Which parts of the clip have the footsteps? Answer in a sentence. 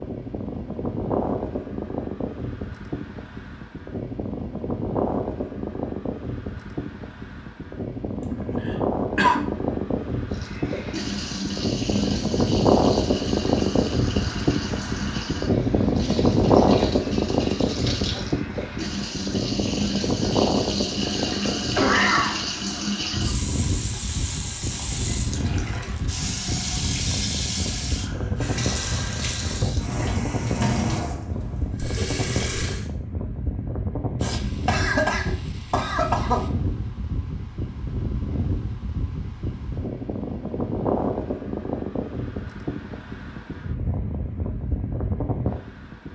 The footsteps can't be heard in this clip.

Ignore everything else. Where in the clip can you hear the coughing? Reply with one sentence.
The coughing can be heard from 8.2 to 9.4 s, from 21.8 to 22.4 s and from 34.2 to 36.4 s.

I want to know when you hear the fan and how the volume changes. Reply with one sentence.
You can hear the fan from 0.0 to 46.1 s, getting louder then quieter.